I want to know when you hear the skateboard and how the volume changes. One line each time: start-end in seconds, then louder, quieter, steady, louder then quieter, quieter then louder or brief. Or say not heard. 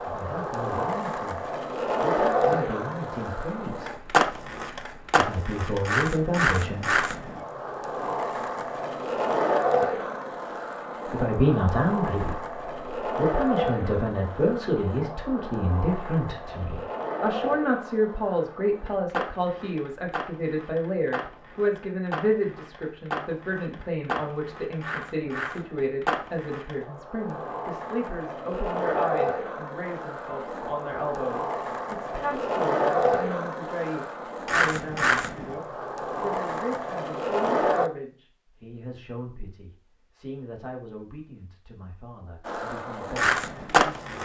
0.0-37.9 quieter then louder
42.5-44.2 brief.